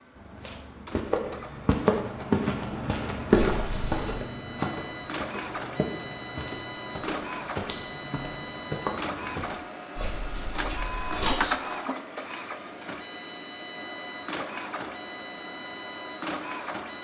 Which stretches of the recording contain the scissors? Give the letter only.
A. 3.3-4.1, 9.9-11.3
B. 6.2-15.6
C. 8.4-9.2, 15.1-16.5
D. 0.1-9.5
A.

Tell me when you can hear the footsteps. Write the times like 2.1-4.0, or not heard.
0.1-9.5.